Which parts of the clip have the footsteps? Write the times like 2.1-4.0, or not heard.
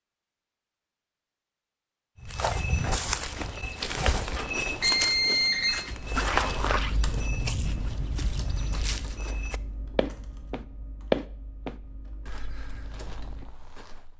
2.2-14.1.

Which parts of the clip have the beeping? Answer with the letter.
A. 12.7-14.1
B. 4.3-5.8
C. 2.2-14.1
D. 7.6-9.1
B.